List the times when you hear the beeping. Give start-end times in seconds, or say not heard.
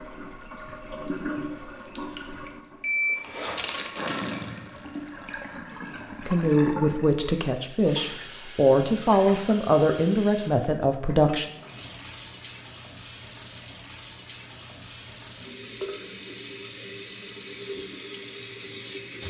2.8-4.2.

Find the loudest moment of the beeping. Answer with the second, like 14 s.
3 s.